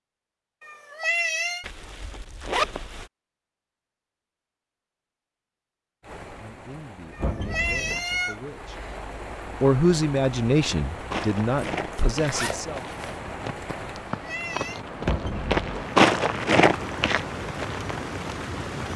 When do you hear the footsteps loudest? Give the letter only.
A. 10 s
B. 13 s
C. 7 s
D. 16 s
D.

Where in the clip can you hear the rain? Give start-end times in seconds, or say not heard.
6.0-18.9.